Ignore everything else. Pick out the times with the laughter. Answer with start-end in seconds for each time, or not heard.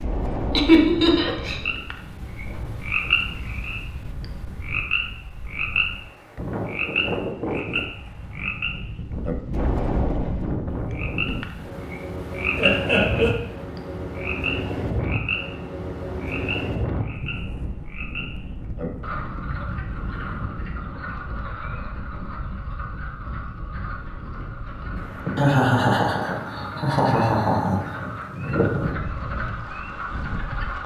0.6-1.6, 12.6-13.3, 25.4-27.9.